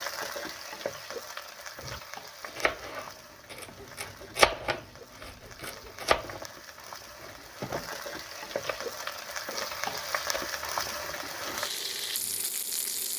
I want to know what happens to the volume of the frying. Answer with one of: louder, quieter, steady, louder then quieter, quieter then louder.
quieter then louder.